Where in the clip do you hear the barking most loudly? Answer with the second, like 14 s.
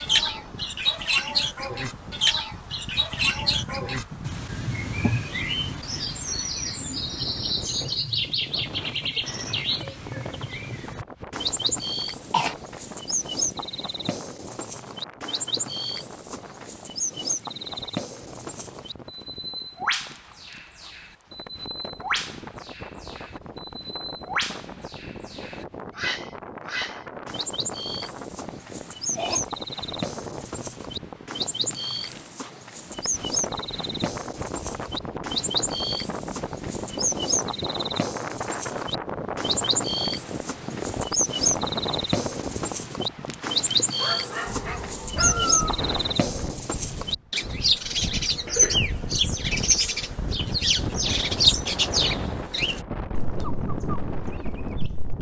45 s.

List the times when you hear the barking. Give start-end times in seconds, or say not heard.
44.0-45.8.